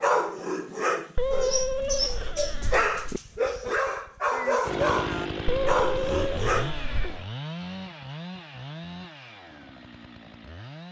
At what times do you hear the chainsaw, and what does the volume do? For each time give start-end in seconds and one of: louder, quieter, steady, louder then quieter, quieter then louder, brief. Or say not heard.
4.6-10.8 quieter.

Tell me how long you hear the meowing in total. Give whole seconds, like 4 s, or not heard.
4 s.